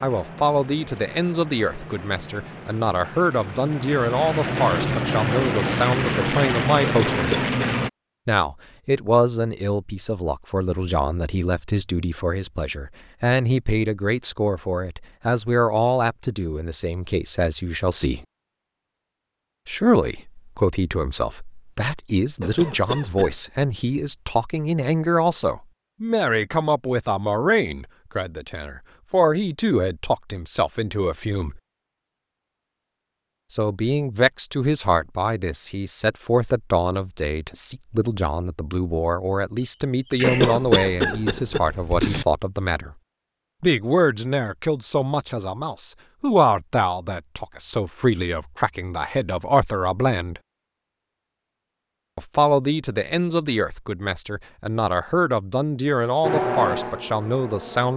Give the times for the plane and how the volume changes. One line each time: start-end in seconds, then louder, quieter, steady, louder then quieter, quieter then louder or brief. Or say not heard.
0.0-7.9 louder
56.2-57.9 brief.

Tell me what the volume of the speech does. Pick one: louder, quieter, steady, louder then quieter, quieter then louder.
steady.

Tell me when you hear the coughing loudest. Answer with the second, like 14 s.
41 s.